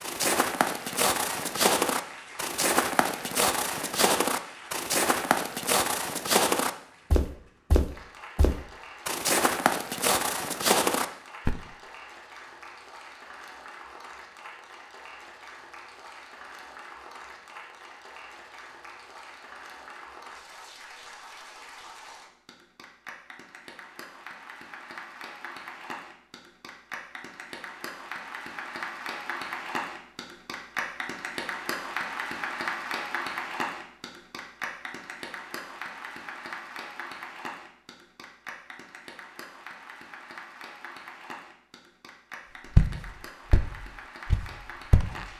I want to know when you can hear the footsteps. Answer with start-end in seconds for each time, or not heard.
0.0-11.6, 42.8-45.2.